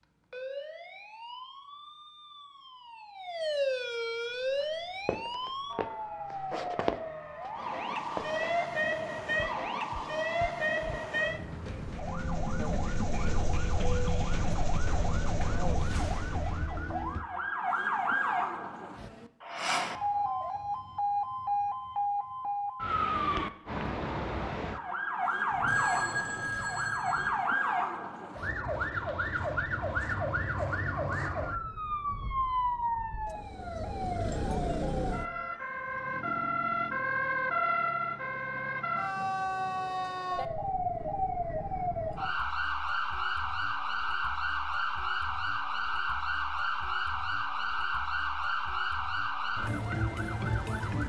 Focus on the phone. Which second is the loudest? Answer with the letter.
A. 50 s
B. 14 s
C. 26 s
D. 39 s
C.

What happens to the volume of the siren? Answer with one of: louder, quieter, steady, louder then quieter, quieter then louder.
steady.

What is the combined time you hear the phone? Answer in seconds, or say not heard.
2 s.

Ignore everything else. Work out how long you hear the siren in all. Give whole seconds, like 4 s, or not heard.
51 s.